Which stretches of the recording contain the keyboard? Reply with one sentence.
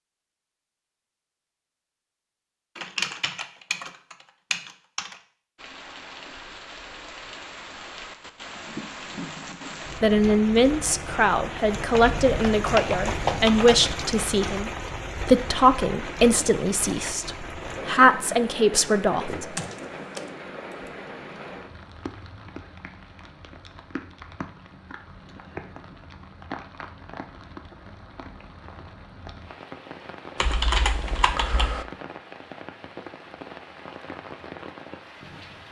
The keyboard can be heard from 2.8 to 5.2 s, from 11.9 to 13.8 s, from 19.4 to 20.2 s and from 30.4 to 31.9 s.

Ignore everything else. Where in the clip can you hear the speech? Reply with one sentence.
You can hear the speech from 10.0 to 19.6 s.